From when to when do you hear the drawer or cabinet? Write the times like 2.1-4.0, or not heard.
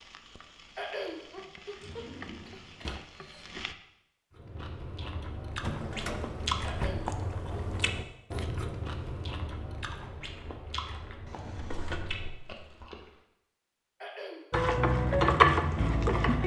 1.8-3.0, 5.6-8.1, 11.2-12.9.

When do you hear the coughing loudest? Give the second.
1 s.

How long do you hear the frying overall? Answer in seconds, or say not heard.
6 s.